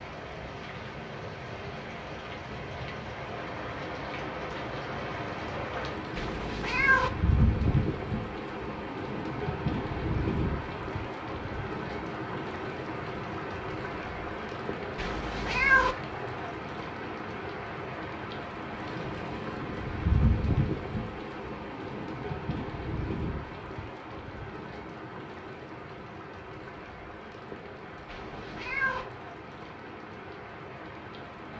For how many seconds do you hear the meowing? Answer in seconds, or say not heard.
3 s.